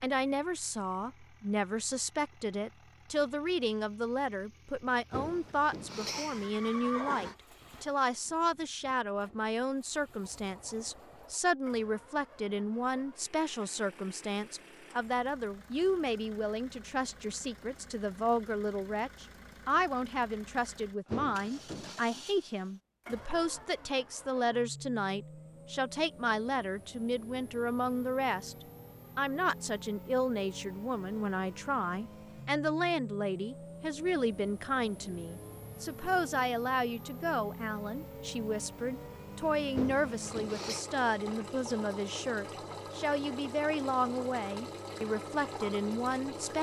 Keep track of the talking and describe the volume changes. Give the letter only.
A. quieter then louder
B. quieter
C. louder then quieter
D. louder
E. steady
E.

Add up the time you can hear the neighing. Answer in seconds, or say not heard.
4 s.